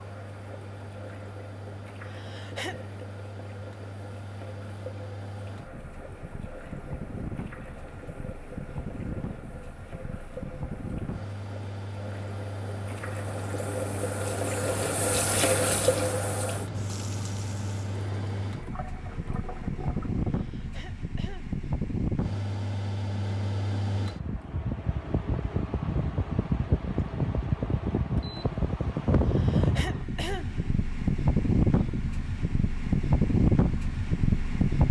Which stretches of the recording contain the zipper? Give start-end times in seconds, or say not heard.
not heard.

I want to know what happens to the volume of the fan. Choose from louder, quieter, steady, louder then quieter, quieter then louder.
louder.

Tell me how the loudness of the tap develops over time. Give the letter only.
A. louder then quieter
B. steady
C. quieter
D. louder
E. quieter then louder
A.